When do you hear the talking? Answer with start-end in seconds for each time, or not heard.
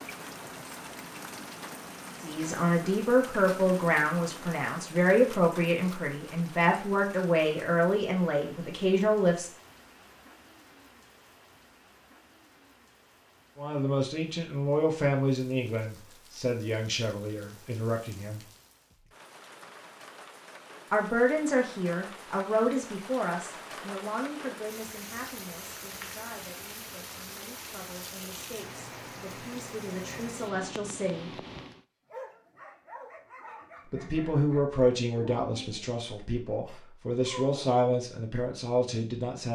2.2-9.5, 13.6-18.4, 20.9-31.3, 33.9-39.5.